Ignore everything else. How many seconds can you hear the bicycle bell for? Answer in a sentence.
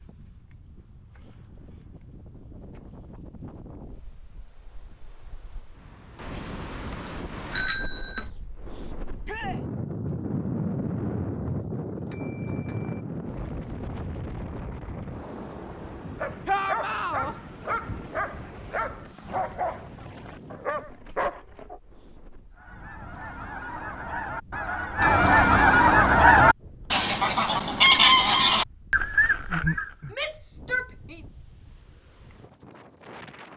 The bicycle bell can be heard for 4 seconds in total.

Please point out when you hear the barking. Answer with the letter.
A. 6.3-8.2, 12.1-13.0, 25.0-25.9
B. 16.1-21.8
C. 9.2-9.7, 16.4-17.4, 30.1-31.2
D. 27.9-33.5
B.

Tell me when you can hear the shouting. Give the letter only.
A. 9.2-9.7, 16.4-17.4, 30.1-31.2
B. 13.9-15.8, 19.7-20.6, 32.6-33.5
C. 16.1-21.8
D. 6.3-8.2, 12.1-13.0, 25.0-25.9
A.